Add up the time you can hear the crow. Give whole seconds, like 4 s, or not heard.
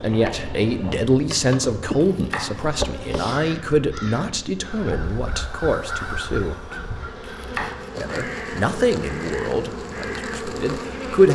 8 s.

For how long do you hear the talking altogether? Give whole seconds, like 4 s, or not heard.
10 s.